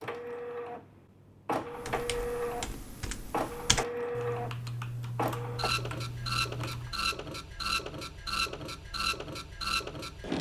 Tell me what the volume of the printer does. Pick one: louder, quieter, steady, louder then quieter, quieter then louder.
steady.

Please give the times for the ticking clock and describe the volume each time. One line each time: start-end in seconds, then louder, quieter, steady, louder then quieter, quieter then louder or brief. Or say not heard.
not heard.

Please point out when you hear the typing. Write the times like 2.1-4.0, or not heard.
1.7-7.0.